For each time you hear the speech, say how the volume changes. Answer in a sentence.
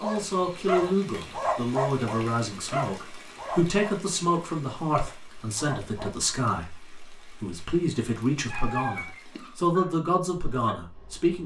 You can hear the speech from 0.0 to 11.4 s, at a steady volume.